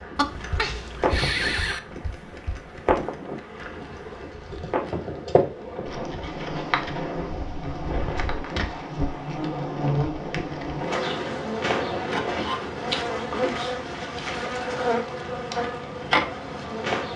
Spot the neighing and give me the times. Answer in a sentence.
The neighing can be heard from 0.1 to 1.8 s.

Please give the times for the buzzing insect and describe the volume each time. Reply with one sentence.
The buzzing insect can be heard from 0.0 to 17.1 s, getting louder.